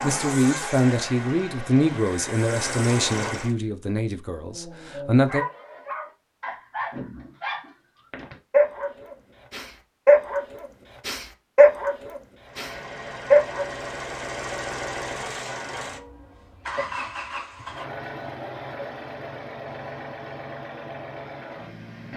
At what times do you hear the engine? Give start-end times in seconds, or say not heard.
0.0-3.5, 12.4-22.1.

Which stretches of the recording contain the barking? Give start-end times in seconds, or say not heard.
4.4-13.9.